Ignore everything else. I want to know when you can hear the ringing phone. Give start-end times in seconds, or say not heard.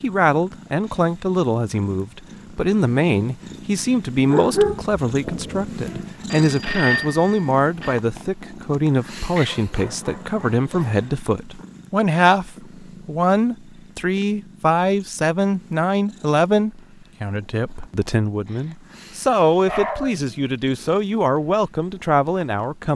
6.3-8.0.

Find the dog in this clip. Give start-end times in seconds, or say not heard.
4.2-5.7, 9.3-11.2, 18.5-20.2.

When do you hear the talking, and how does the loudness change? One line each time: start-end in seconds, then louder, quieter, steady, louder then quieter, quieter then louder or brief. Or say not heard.
0.0-22.9 steady.